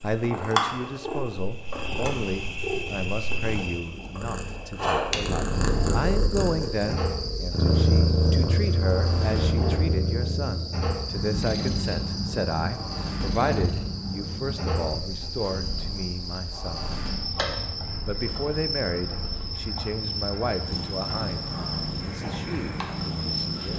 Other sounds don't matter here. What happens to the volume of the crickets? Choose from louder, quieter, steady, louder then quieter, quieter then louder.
steady.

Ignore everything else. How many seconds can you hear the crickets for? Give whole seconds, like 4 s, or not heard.
24 s.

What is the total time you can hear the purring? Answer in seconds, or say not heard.
24 s.